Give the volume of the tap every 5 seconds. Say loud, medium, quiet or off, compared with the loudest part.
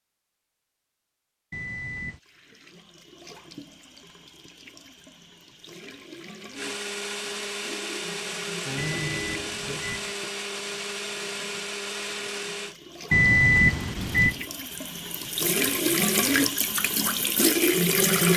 quiet, quiet, quiet, loud.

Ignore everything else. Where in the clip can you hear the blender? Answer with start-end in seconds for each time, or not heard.
6.5-12.8.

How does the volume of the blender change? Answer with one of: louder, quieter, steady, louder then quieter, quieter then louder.
steady.